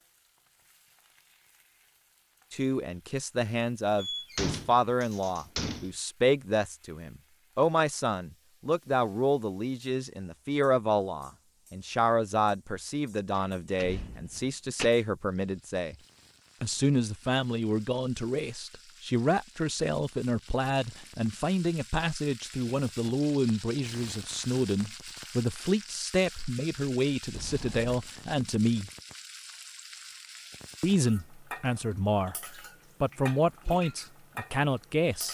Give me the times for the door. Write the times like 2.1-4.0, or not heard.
4.0-6.0, 13.3-14.9, 27.3-27.9.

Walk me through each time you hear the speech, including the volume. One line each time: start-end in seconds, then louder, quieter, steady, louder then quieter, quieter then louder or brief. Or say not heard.
2.5-15.9 steady
16.6-28.9 steady
30.8-32.4 brief
33.0-35.3 brief.